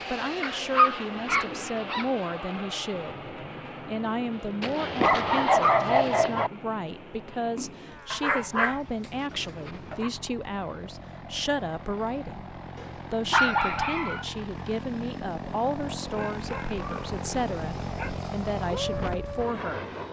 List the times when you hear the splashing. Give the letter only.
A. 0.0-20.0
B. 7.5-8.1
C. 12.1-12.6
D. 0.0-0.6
B.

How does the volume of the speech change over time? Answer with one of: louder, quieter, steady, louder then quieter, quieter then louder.
steady.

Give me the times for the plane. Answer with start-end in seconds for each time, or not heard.
0.0-20.0.